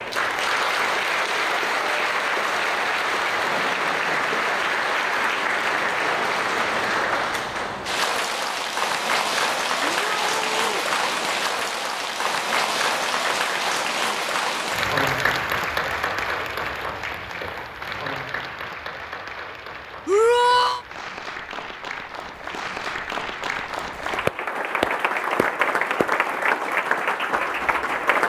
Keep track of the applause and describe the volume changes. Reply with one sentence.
The volume of the applause goes down, then up.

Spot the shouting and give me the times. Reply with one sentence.
You can hear the shouting from 9.8 to 10.8 s and from 20.1 to 20.8 s.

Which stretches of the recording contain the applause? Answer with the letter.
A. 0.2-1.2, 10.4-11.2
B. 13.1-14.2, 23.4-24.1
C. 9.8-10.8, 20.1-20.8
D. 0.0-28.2
D.